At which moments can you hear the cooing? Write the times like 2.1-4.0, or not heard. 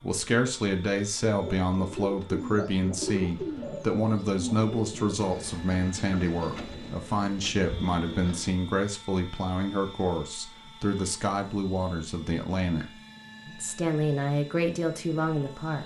1.2-8.7.